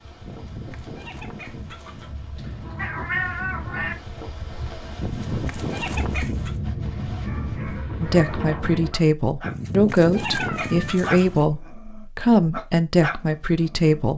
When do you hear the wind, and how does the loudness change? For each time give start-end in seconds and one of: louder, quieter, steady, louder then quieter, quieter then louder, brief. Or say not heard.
0.0-8.9 louder.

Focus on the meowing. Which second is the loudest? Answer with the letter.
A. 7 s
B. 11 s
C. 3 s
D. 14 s
C.